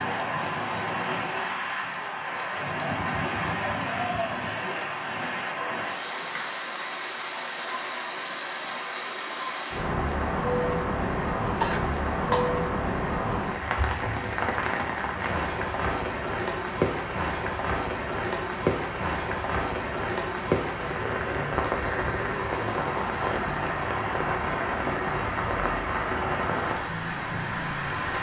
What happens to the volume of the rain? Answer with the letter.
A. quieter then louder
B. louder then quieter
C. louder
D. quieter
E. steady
E.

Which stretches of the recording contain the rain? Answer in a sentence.
You can hear the rain from 0.0 to 28.1 s.